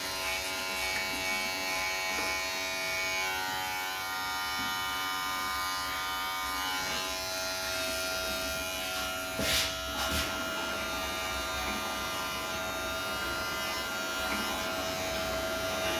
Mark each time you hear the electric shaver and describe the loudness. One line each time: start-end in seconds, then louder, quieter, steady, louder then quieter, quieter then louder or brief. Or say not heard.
0.0-15.9 steady.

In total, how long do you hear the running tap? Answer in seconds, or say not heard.
16 s.